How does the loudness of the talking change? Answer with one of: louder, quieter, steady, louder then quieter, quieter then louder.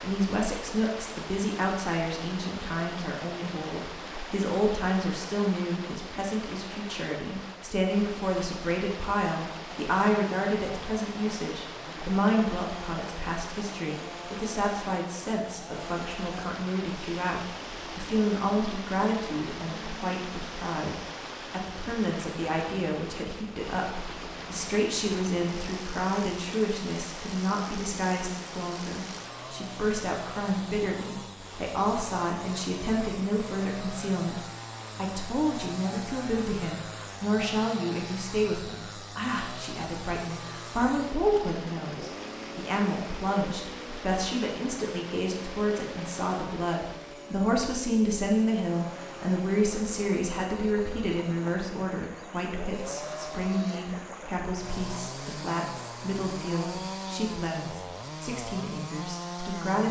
steady.